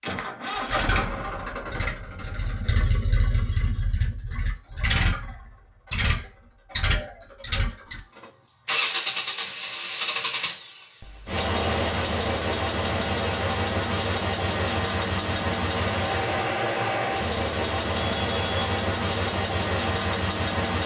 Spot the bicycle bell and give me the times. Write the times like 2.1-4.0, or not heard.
17.9-18.8.